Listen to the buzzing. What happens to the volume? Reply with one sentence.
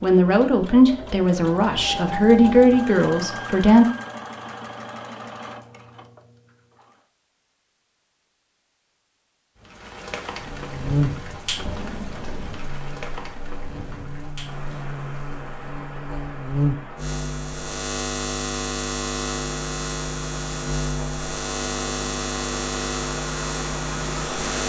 The loudness of the buzzing goes down, then up.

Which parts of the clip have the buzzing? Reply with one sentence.
You can hear the buzzing from 10.3 to 24.6 s.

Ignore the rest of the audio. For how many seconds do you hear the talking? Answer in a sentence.
You can hear the talking for 4 seconds altogether.